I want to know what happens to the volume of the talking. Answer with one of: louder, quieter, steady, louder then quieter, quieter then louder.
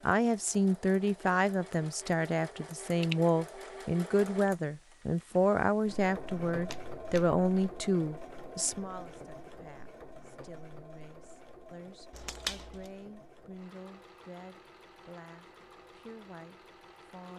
quieter.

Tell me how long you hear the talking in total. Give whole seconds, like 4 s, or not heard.
17 s.